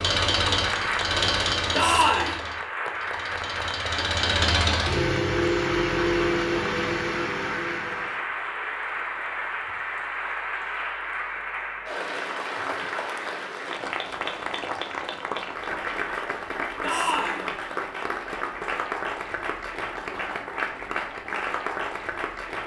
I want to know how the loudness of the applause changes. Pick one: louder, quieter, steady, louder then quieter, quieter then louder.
steady.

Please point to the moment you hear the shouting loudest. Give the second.
2 s.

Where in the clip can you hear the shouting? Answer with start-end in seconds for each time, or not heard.
1.7-2.4, 16.8-17.4.